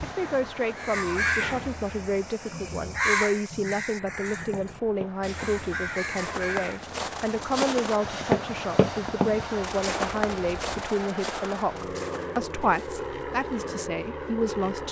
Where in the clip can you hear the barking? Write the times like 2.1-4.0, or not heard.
not heard.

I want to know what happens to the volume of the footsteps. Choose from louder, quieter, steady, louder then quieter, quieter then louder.
louder then quieter.